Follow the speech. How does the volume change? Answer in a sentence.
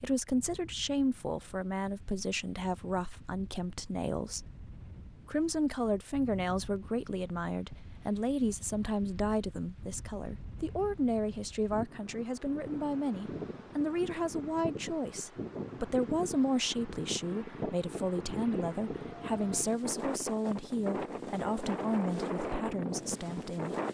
The loudness of the speech stays about the same.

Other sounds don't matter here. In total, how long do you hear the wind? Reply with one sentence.
You can hear the wind for 24 seconds altogether.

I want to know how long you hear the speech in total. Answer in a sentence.
You can hear the speech for 23 seconds altogether.